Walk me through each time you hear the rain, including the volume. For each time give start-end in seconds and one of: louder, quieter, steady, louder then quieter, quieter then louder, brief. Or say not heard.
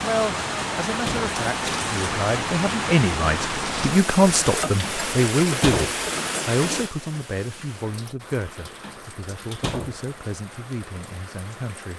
0.0-11.9 quieter.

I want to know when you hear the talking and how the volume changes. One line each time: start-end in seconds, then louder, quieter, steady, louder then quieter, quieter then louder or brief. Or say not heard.
0.0-11.9 louder then quieter.